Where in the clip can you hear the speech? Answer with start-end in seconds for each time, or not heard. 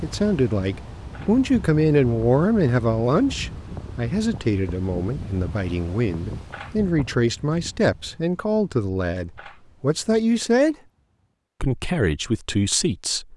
0.0-10.8, 11.6-13.3.